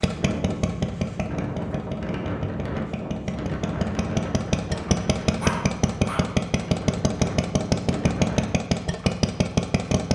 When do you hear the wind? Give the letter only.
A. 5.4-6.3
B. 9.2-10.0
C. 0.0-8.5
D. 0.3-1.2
C.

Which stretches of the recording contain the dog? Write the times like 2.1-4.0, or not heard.
5.4-6.3.